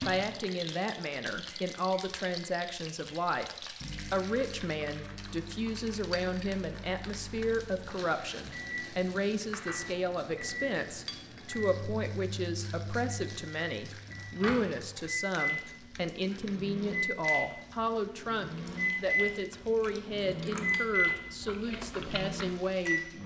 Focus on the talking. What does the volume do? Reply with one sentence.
The volume of the talking stays about the same.